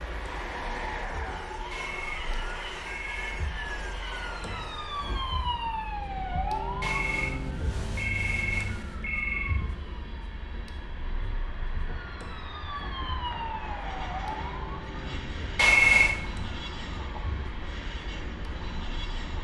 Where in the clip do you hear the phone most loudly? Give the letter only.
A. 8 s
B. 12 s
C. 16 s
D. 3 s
C.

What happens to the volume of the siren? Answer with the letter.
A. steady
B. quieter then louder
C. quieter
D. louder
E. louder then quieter
E.